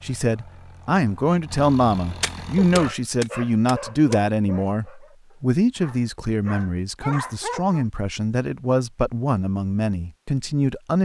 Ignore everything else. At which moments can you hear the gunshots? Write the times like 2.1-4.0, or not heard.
2.2-4.2.